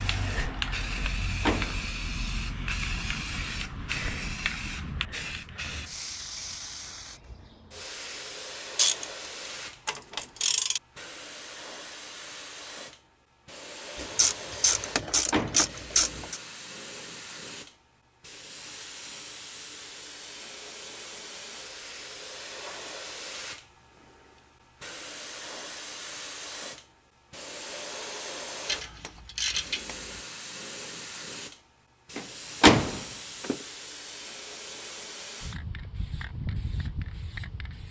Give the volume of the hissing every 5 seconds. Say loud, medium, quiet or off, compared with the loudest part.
loud, medium, medium, medium, medium, medium, medium, medium.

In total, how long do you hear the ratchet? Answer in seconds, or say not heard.
6 s.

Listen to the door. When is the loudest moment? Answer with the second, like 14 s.
33 s.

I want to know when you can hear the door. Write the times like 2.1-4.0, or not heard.
0.9-1.9, 14.8-15.7, 32.1-33.5.